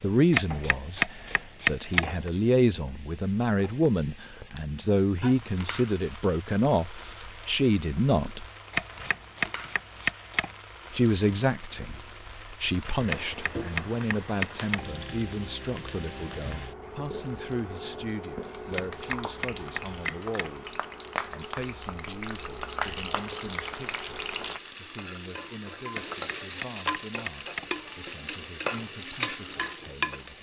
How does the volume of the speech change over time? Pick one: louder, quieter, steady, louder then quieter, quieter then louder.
quieter.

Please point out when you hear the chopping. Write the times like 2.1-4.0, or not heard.
0.3-2.3, 8.7-10.5, 13.1-15.0, 18.7-20.6, 25.9-27.8.